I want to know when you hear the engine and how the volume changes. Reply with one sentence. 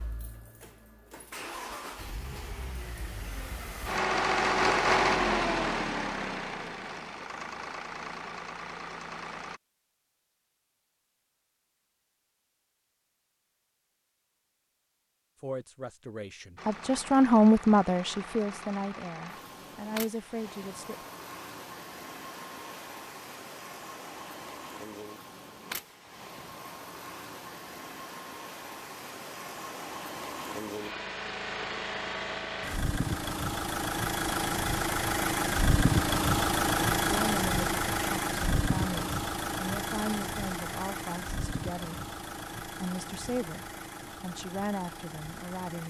The engine can be heard from 0.0 to 9.6 s, getting louder then quieter; and from 16.6 to 45.8 s, getting louder then quieter.